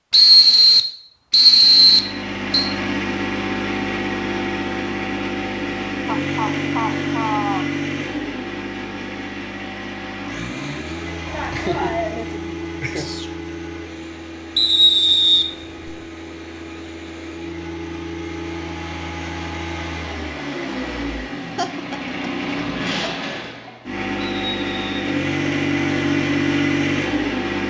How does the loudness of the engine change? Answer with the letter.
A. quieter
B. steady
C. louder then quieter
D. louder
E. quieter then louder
E.